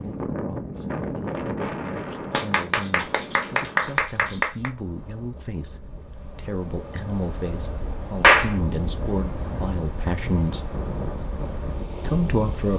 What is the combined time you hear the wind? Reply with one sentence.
You can hear the wind for 13 seconds altogether.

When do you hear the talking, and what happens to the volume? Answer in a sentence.
The talking can be heard from 0.0 to 10.7 s, getting louder; and briefly from 12.0 to 12.7 s.